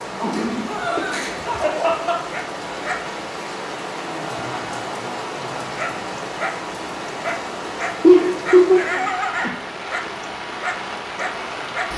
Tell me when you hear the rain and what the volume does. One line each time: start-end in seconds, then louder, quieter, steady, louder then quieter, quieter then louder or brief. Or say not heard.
0.0-11.9 steady.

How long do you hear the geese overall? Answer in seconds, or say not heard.
not heard.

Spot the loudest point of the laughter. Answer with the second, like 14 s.
8 s.